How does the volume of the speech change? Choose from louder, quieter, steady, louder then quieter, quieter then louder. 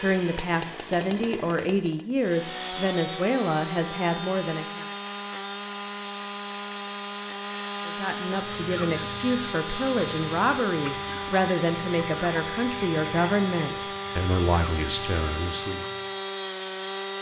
steady.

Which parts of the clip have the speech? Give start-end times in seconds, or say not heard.
0.0-4.8, 7.8-15.8.